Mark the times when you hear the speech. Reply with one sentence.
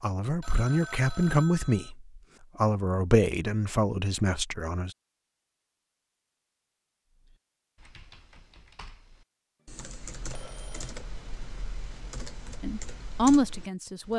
The speech can be heard from 0.0 to 4.9 s and from 12.6 to 14.1 s.